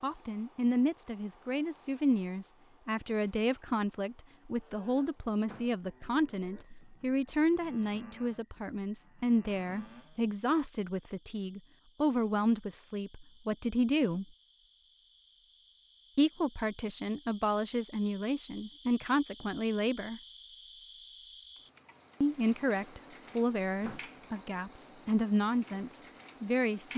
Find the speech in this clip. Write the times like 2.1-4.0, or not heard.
0.0-14.2, 16.1-20.2, 22.2-26.9.